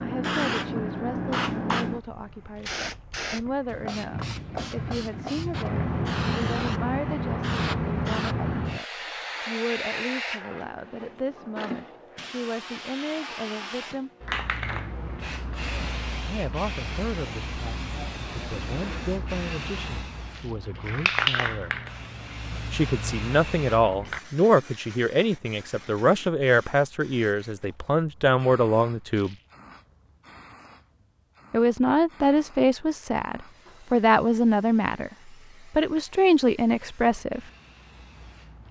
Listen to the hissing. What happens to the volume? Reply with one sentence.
The volume of the hissing goes down.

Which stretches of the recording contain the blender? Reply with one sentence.
The blender can't be heard in this clip.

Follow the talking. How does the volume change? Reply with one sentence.
The loudness of the talking goes up.